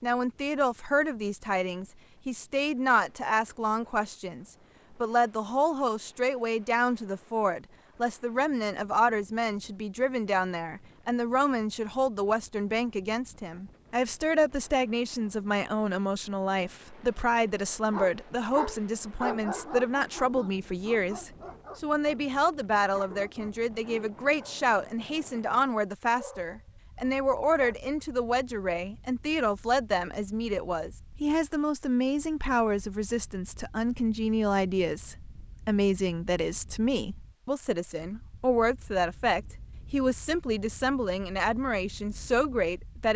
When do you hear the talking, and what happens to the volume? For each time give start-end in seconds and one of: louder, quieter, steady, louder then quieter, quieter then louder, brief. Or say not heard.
0.0-43.1 steady.